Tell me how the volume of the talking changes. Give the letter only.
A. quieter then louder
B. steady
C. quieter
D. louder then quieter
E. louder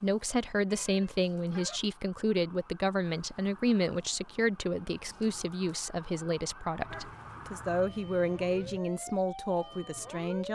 B.